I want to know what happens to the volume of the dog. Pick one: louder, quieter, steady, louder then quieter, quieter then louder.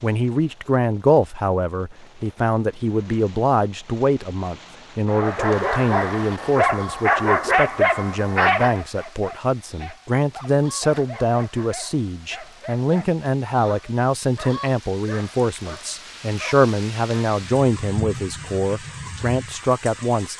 quieter.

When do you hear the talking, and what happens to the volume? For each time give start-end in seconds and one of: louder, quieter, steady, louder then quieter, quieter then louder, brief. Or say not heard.
0.0-20.3 steady.